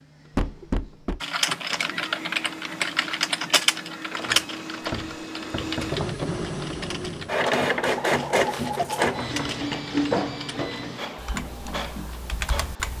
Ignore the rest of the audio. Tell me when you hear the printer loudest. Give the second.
8 s.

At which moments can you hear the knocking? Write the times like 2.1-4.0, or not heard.
0.3-1.2, 4.8-6.2, 8.9-10.8.